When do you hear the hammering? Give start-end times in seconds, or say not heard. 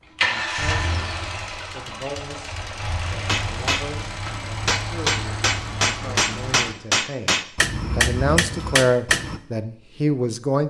3.2-9.4.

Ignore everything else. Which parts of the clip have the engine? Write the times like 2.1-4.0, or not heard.
0.1-6.8.